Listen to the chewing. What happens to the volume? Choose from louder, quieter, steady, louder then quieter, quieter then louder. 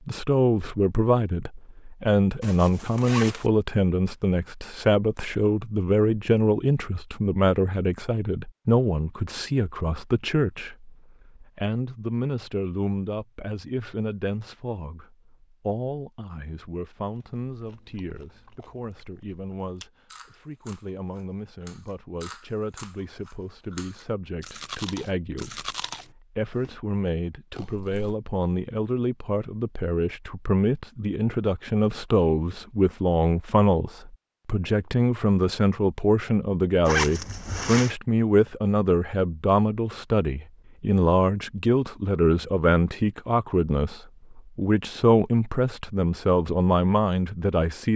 louder.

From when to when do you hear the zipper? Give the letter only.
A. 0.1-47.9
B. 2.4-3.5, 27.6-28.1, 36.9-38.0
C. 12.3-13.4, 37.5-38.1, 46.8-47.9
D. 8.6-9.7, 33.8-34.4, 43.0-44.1
B.